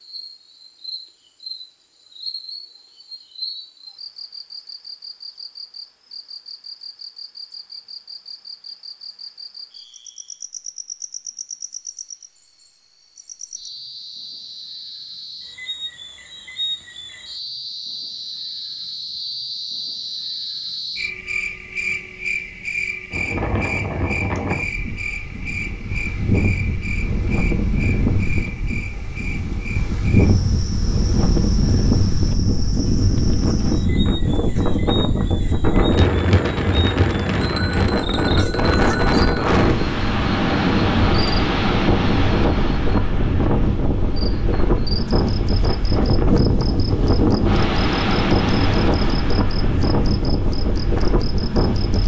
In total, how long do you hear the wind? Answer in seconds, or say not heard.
29 s.